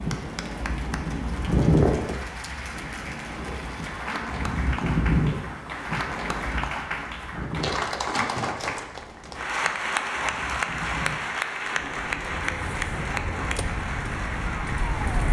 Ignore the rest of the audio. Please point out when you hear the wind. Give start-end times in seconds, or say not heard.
0.0-15.2.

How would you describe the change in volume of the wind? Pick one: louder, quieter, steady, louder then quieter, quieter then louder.
quieter.